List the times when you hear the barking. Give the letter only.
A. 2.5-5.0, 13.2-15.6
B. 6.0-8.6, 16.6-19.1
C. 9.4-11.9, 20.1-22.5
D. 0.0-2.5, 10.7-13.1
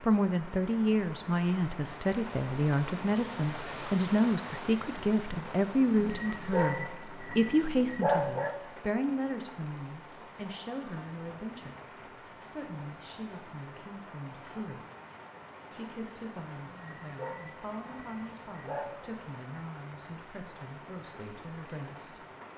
B.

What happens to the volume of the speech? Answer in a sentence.
The loudness of the speech goes down.